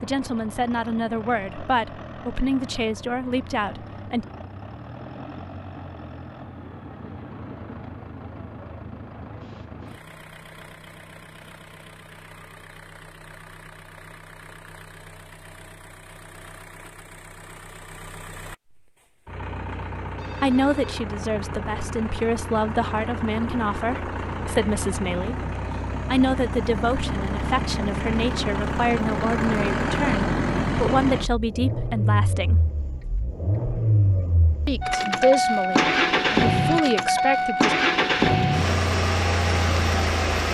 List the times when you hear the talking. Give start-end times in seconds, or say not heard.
0.0-4.2, 20.4-25.4, 26.1-32.6, 34.6-37.8.